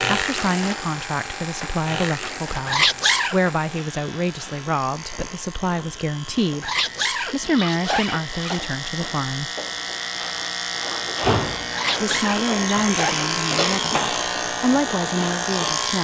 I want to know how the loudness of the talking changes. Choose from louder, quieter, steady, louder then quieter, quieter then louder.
steady.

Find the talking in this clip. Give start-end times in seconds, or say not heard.
0.0-9.5, 12.0-15.9.